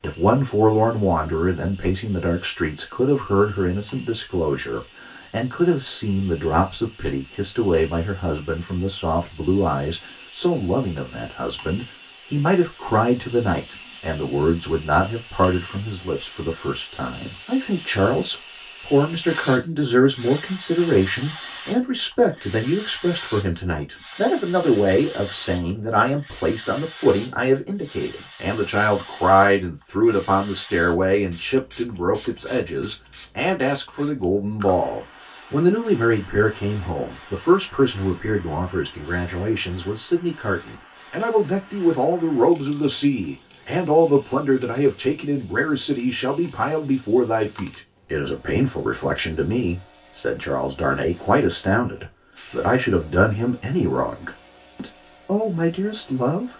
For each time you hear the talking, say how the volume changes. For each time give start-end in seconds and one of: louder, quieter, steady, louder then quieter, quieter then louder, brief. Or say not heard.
0.0-56.5 steady.